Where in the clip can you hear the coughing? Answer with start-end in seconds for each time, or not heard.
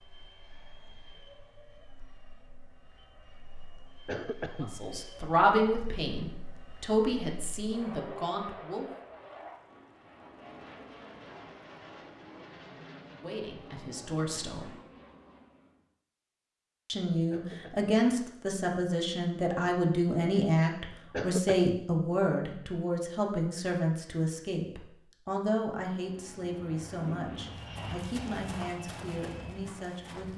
4.0-4.7, 17.3-17.9, 21.1-21.8.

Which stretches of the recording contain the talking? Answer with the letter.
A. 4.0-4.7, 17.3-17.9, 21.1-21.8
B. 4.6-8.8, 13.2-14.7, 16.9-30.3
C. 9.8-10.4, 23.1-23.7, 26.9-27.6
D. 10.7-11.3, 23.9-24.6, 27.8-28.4
B.